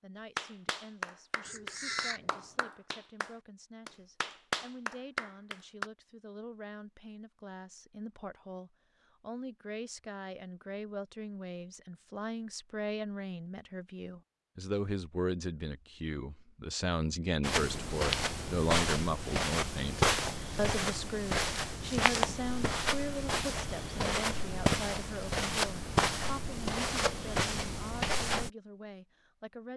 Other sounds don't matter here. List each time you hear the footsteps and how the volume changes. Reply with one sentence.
The footsteps can be heard from 17.4 to 28.5 s, at a steady volume.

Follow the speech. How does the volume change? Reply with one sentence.
The loudness of the speech goes up, then down.